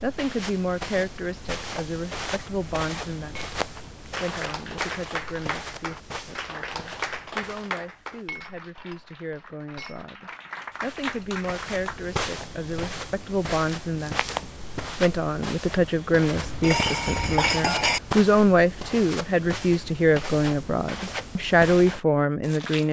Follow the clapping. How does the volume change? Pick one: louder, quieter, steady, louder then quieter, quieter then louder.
quieter then louder.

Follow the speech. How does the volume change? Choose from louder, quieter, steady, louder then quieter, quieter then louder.
quieter then louder.